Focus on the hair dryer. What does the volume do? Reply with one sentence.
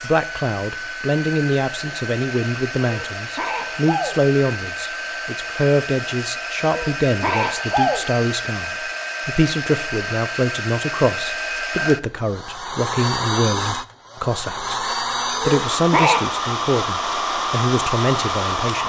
The loudness of the hair dryer goes up.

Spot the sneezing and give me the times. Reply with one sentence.
The sneezing can be heard from 2.8 to 4.2 s, from 6.7 to 8.1 s and from 15.3 to 16.2 s.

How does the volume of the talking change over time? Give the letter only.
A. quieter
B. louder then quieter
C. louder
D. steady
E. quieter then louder
D.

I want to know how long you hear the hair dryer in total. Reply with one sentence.
You can hear the hair dryer for 19 seconds altogether.